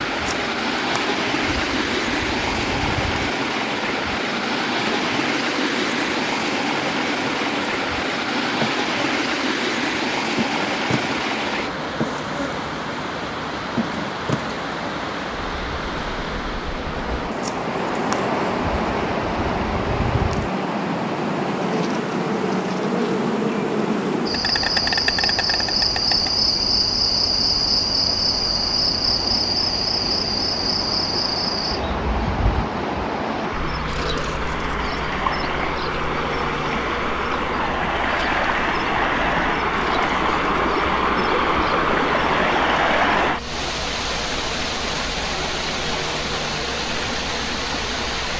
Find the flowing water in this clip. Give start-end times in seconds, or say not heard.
0.0-48.3.